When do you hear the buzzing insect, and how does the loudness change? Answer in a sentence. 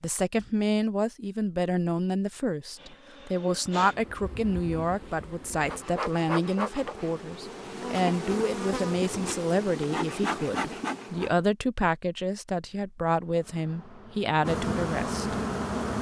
You can hear the buzzing insect from 2.8 to 11.4 s, getting louder; and briefly from 13.2 to 15.9 s.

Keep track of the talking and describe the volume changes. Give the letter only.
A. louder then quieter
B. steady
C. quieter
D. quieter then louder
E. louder
B.